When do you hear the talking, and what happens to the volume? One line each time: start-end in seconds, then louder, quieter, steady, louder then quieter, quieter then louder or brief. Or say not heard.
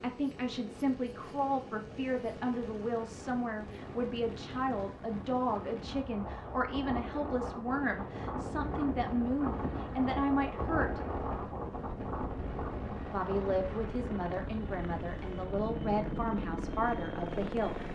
0.0-11.0 steady
13.1-17.8 steady.